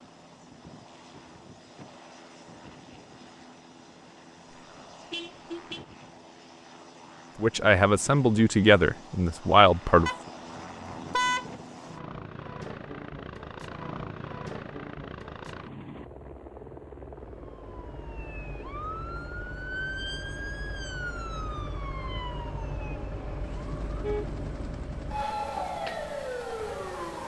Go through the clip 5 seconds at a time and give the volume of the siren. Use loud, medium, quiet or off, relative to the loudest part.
off, off, off, medium, medium, loud.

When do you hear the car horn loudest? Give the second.
11 s.